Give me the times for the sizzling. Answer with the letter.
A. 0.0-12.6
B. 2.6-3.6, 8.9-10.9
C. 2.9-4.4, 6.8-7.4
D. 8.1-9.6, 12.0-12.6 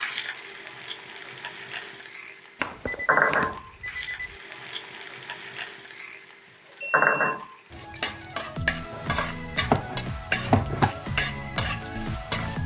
A.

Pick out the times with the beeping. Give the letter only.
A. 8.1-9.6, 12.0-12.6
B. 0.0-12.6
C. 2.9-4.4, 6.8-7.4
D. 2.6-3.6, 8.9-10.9
C.